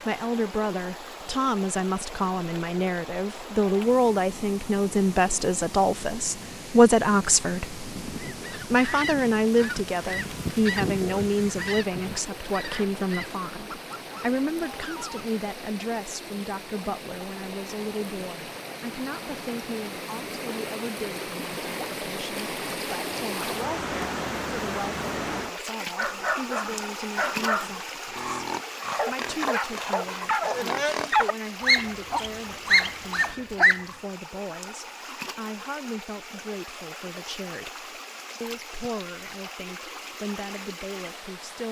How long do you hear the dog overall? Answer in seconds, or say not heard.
8 s.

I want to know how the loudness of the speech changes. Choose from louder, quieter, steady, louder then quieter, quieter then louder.
quieter.